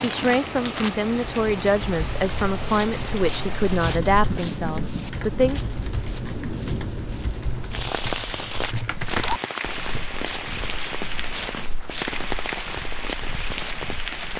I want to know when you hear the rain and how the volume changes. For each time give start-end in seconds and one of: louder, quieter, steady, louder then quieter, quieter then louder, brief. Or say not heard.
0.0-14.3 steady.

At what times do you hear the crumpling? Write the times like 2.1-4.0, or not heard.
0.0-0.9, 9.1-9.8.